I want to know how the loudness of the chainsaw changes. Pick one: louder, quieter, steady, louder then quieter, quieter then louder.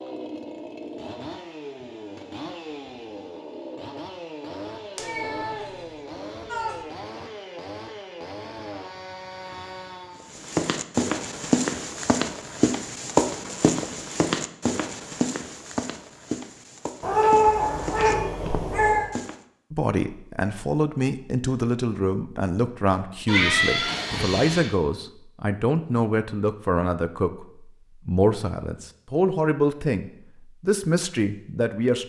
steady.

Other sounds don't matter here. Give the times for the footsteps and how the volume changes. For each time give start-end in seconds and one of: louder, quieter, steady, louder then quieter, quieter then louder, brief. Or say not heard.
10.3-19.4 quieter.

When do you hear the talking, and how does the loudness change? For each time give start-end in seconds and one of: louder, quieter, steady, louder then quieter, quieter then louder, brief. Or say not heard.
19.7-32.0 steady.